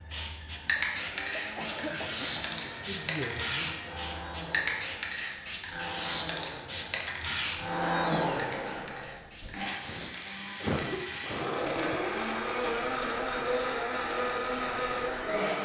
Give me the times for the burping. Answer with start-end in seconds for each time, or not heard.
not heard.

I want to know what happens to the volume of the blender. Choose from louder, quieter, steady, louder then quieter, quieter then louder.
louder.